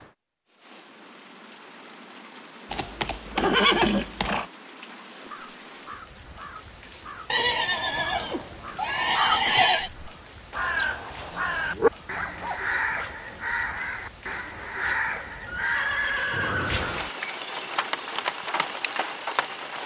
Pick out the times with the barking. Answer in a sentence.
You can hear the barking from 11.1 to 13.1 s.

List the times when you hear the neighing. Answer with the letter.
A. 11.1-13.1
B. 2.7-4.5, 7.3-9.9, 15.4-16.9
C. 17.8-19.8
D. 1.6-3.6
B.